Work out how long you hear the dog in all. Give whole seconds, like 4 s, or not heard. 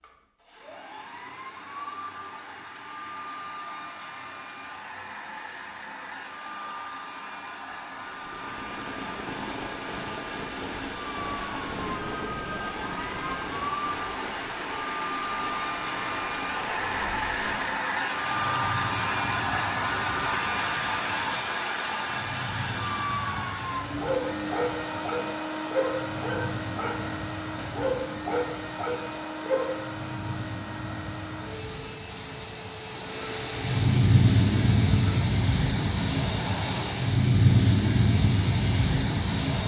6 s.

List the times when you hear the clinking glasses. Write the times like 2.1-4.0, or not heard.
not heard.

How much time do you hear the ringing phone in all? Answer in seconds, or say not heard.
2 s.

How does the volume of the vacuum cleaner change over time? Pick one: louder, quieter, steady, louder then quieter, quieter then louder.
louder then quieter.